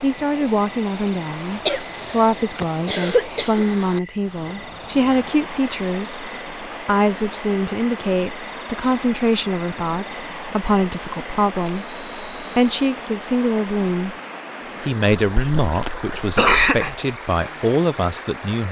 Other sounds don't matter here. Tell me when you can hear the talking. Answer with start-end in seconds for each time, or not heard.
0.0-14.2, 14.8-18.6.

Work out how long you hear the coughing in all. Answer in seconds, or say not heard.
4 s.